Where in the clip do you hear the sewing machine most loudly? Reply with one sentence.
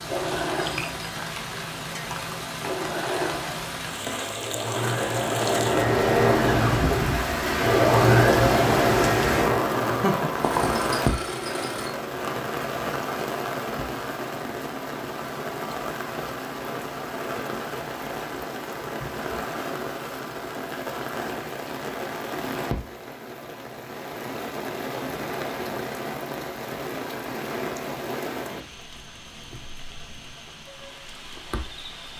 The loudest moment of the sewing machine is at 8 seconds.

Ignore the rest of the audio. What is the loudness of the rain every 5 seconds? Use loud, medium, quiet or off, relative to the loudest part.
medium, loud, loud, medium, medium, medium, quiet.